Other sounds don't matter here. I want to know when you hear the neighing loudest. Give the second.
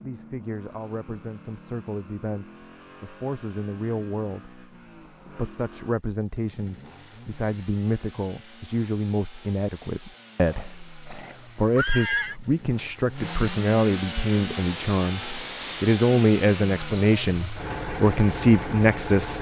12 s.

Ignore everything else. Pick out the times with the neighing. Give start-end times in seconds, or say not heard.
10.5-12.3.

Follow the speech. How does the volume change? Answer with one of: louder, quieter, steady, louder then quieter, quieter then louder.
louder.